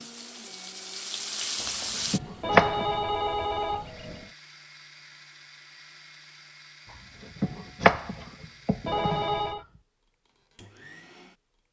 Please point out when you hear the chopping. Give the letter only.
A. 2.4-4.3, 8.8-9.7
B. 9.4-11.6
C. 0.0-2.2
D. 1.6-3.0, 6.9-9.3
D.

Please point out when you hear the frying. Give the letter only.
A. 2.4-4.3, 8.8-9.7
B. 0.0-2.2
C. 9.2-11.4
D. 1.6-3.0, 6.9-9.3
B.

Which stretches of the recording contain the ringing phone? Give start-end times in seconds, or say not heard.
2.4-4.3, 8.8-9.7.